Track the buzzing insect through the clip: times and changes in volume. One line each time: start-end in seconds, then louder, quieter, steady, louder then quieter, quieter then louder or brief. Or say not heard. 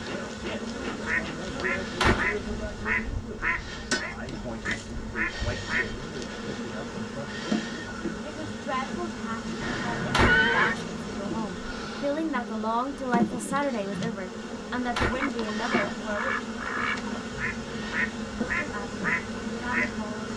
0.0-20.3 steady.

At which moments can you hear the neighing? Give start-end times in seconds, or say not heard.
9.6-10.8.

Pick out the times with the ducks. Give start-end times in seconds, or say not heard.
0.9-6.0, 14.9-20.1.